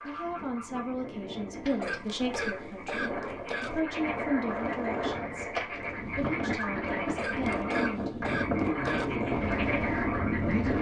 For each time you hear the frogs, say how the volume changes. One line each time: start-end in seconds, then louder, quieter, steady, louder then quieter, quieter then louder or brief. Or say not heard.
0.0-10.7 louder.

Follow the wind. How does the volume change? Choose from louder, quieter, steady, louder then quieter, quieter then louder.
louder.